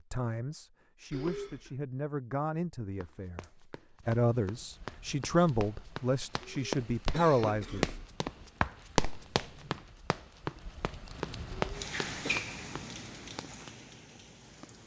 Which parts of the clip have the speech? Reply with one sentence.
The speech can be heard from 0.1 to 3.5 s and from 4.0 to 7.9 s.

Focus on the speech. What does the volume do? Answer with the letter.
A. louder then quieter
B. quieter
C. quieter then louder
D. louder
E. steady
D.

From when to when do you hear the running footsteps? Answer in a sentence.
The running footsteps can be heard from 3.0 to 12.9 s.